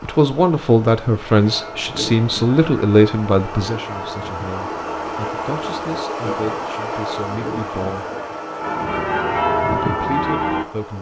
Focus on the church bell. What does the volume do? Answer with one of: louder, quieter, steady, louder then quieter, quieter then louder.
louder.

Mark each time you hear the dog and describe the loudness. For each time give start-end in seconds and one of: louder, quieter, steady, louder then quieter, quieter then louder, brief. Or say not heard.
not heard.